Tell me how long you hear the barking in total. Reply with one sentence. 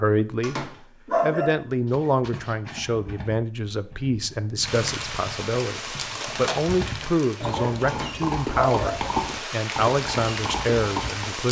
The barking can be heard for 2 seconds in total.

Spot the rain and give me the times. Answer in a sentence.
The rain can be heard from 4.6 to 11.4 s.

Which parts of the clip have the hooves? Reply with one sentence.
The hooves can be heard from 1.9 to 11.3 s.